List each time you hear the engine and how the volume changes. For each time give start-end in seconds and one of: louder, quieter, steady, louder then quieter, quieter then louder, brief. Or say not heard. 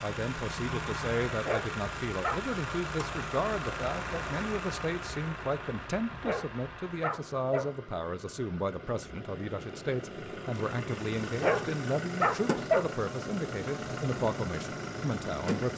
0.0-15.7 quieter then louder.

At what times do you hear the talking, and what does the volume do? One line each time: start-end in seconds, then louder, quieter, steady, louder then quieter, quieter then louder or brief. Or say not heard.
0.0-15.7 steady.